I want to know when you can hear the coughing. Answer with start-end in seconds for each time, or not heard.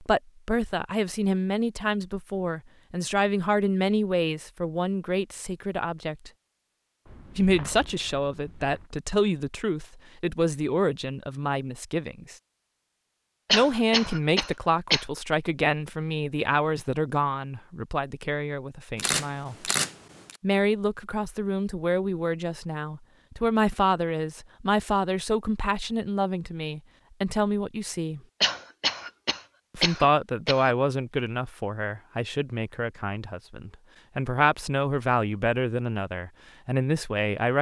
13.4-15.1, 28.4-30.8.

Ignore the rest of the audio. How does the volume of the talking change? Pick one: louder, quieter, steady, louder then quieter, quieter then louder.
steady.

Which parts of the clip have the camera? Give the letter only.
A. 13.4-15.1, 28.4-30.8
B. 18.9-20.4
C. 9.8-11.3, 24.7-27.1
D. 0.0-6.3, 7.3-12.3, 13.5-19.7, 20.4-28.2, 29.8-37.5
B.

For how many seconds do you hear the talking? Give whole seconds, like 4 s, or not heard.
33 s.